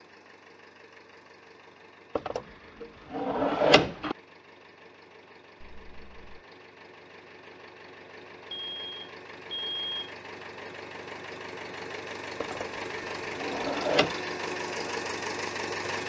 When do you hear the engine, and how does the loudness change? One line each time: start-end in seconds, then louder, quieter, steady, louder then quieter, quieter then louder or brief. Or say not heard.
0.0-16.0 louder.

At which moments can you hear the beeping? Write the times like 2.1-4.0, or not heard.
5.6-6.5, 8.5-10.2.